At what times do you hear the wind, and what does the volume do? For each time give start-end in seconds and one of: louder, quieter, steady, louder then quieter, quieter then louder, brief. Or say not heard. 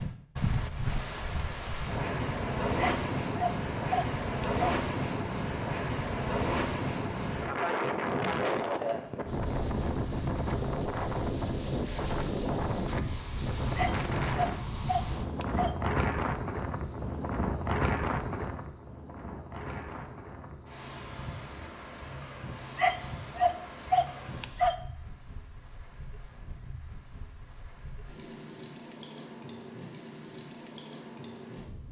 0.0-31.8 quieter.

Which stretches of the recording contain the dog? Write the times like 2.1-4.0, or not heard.
2.8-4.8, 13.8-15.7, 22.8-24.8.